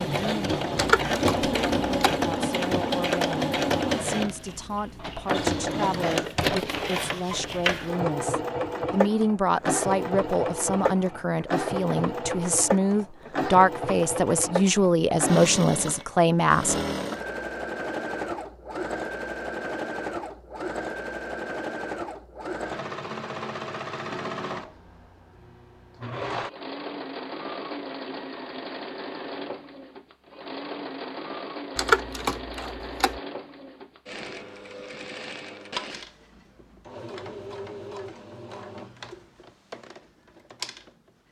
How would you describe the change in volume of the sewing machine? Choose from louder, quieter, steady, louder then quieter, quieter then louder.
quieter.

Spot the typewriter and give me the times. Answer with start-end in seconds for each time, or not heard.
0.8-2.2, 31.8-33.2.